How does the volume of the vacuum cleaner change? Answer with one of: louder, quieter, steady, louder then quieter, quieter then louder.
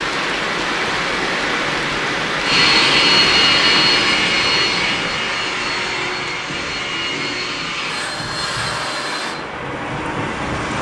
quieter.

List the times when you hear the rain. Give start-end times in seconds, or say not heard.
0.0-10.7.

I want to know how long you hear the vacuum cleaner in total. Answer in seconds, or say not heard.
7 s.